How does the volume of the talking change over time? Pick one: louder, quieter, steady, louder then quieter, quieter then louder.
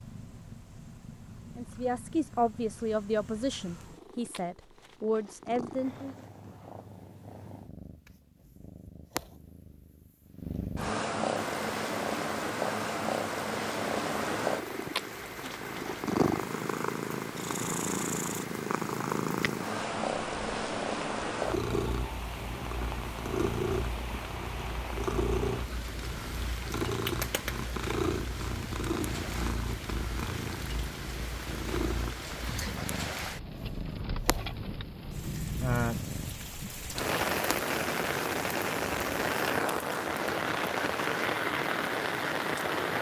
quieter then louder.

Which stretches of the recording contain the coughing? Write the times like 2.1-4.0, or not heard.
not heard.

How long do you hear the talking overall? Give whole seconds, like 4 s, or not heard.
5 s.